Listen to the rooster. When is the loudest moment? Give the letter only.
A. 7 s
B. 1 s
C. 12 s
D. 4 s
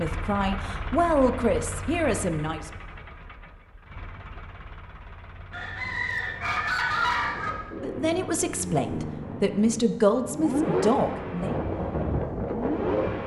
A.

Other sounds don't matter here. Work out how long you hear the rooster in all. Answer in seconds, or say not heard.
2 s.